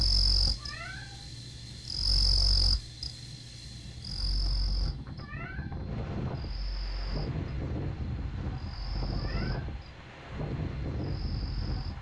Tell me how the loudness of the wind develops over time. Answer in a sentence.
The volume of the wind goes up.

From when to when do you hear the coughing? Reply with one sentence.
You can't hear the coughing here.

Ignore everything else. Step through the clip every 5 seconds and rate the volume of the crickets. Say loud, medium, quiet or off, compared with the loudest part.
loud, quiet, quiet.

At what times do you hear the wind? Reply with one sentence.
You can hear the wind from 3.8 to 11.9 s.